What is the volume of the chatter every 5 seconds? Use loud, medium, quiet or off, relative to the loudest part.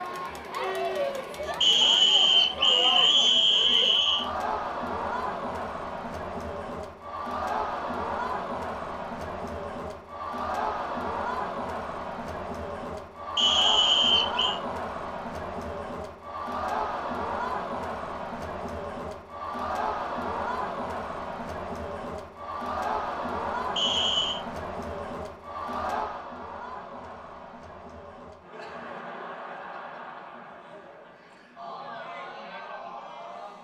loud, loud, loud, loud, loud, medium, medium.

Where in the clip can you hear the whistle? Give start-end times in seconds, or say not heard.
1.6-4.2, 13.3-14.6, 23.8-24.4.